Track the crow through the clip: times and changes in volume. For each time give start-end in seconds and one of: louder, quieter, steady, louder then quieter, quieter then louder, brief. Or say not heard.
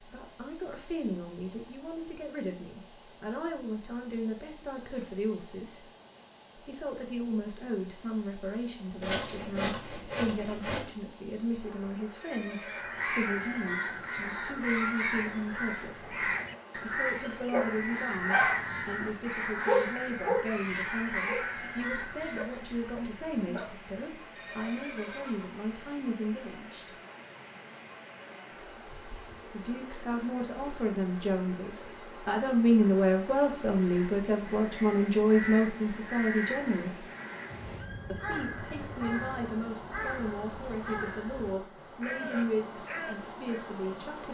12.6-22.6 steady
33.8-43.7 steady.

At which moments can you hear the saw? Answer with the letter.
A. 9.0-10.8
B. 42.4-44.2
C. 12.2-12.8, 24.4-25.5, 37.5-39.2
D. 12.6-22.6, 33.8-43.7
A.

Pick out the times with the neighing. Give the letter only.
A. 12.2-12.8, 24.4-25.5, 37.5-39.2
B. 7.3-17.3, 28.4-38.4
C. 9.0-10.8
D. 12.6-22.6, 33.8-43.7
A.